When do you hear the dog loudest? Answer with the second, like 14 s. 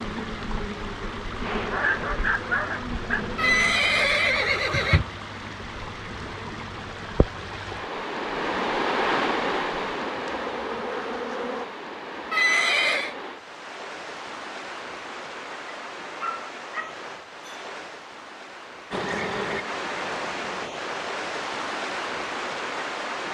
2 s.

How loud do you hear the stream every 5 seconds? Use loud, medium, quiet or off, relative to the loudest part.
medium, loud, medium, medium, loud.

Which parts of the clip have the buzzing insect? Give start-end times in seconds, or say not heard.
0.0-11.7, 18.9-20.7.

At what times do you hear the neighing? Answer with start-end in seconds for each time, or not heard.
3.4-5.0, 12.3-13.2.